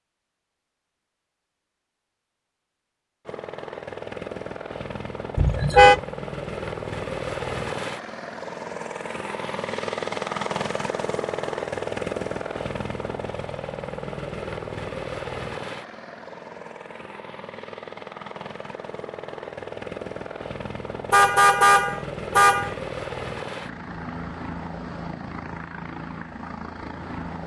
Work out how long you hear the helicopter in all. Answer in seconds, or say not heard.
24 s.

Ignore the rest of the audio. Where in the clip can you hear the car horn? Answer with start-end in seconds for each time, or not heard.
5.3-6.0, 21.1-22.8.